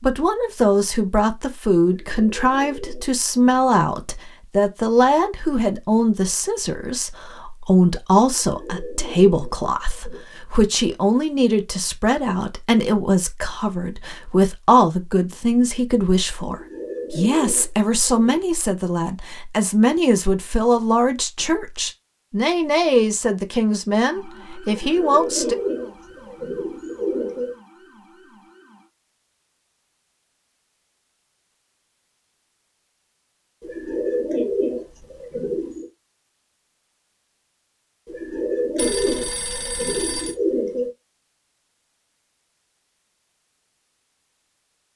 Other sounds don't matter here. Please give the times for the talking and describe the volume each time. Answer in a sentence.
You can hear the talking from 0.0 to 25.6 s, at a steady volume.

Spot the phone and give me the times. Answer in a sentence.
You can hear the phone from 38.8 to 40.4 s.